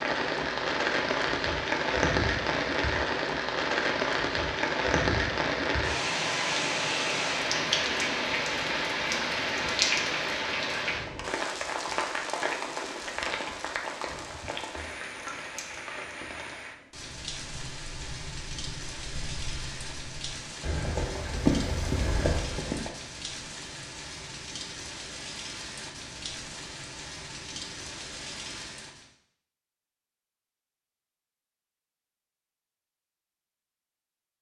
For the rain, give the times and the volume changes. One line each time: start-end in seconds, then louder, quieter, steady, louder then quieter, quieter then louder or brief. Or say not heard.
0.0-29.1 quieter.